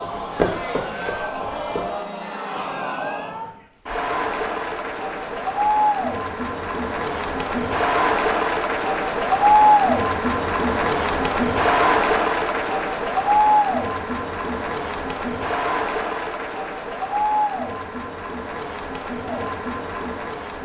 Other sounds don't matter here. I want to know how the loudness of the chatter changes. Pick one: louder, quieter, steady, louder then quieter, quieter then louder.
louder then quieter.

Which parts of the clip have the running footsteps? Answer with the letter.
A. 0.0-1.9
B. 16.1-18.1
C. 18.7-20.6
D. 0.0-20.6
A.